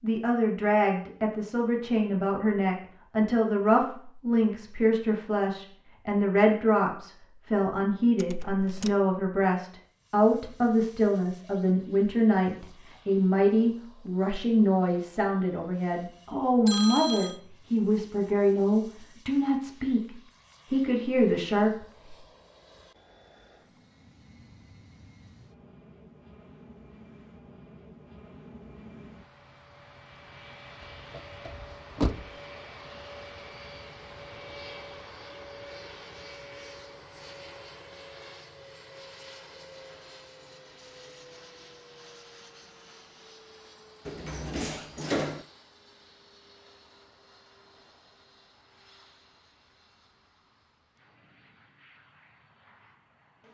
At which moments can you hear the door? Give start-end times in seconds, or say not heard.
8.2-8.9, 30.8-32.3, 44.0-45.5.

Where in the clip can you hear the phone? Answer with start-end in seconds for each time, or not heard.
16.6-17.4.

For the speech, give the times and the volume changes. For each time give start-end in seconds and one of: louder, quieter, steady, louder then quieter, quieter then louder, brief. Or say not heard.
0.0-22.1 steady.